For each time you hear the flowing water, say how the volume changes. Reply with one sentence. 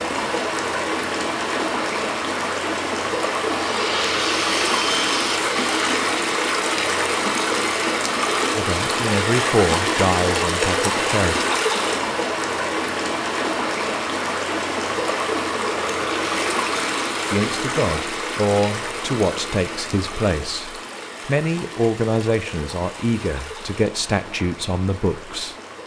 You can hear the flowing water from 0.0 to 25.8 s, getting quieter.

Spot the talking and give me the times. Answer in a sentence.
You can hear the talking from 8.6 to 11.4 s and from 17.3 to 25.6 s.